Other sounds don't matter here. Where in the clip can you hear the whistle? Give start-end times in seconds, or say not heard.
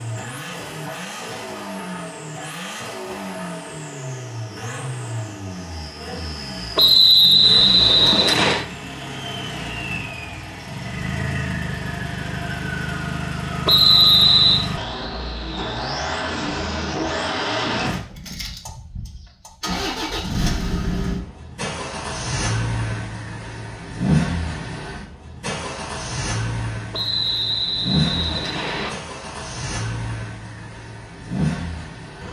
6.8-8.7, 13.7-14.7, 26.9-28.9.